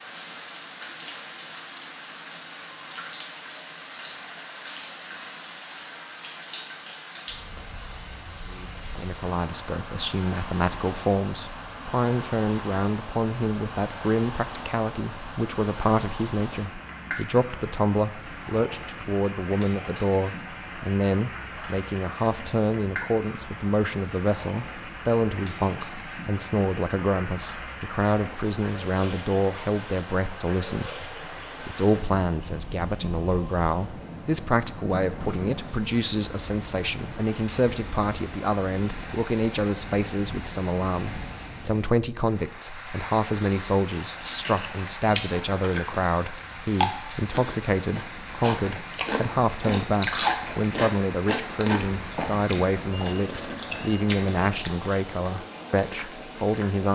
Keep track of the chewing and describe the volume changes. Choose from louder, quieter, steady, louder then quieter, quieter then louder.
louder then quieter.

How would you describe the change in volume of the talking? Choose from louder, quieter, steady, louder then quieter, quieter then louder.
steady.